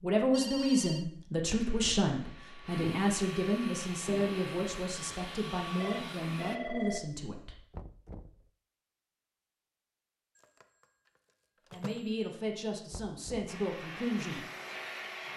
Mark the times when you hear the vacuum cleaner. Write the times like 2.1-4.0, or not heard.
1.5-6.6, 13.4-15.3.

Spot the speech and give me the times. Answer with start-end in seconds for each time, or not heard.
0.0-7.6, 11.7-14.4.